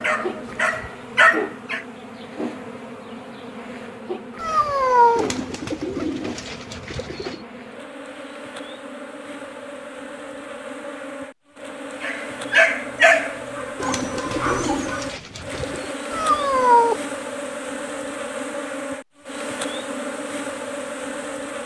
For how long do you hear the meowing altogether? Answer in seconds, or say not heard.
2 s.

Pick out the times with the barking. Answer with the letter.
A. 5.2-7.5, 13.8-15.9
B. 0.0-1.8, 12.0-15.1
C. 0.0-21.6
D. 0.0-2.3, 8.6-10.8
B.